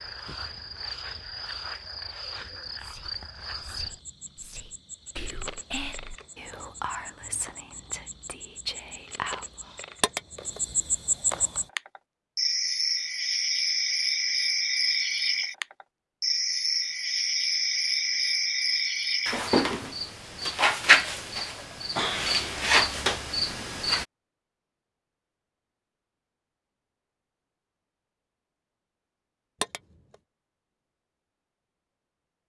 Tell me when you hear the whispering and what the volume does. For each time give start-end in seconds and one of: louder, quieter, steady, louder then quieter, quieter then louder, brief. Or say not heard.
2.8-9.7 louder.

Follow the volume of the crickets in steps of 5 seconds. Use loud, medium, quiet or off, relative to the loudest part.
quiet, quiet, loud, loud, loud, off, off.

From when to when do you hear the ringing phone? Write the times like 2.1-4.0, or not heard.
10.0-10.6, 29.6-30.1.